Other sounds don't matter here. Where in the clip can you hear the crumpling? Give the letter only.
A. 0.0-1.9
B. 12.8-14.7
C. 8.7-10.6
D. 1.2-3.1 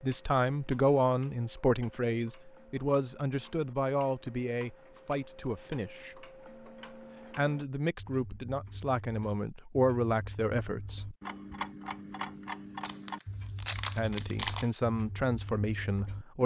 B.